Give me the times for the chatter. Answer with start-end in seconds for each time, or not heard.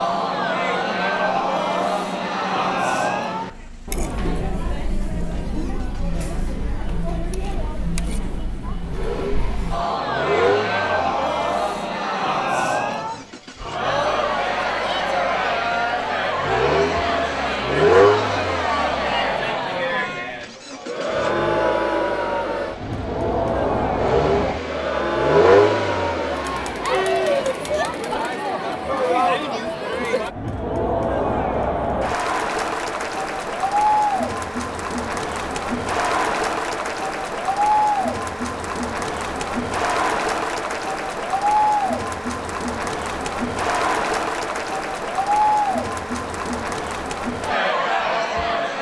0.0-48.7.